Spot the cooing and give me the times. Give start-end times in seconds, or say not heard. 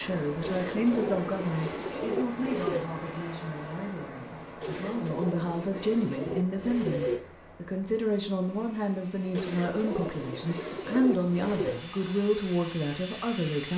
0.4-2.9, 4.6-7.2, 9.3-11.8.